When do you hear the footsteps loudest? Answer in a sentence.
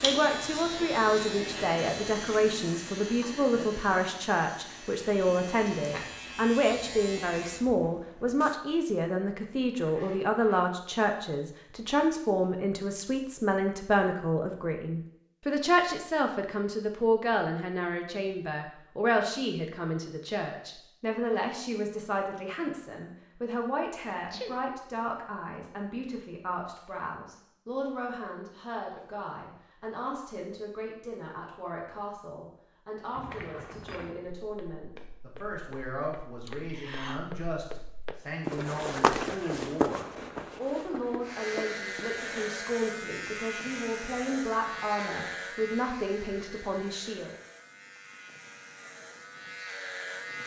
The volume of the footsteps peaks at 39 seconds.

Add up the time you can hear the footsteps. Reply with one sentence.
The footsteps can be heard for 9 seconds in total.